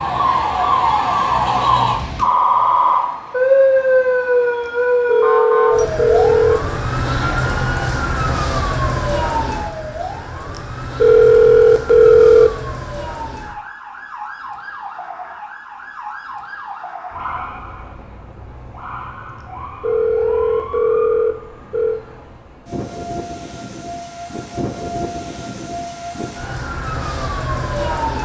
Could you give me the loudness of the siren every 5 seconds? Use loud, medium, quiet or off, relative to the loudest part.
loud, medium, quiet, quiet, quiet, medium.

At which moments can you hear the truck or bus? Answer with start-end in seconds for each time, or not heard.
not heard.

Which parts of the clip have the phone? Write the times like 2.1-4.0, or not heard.
4.7-6.6, 10.6-12.5, 19.4-22.0.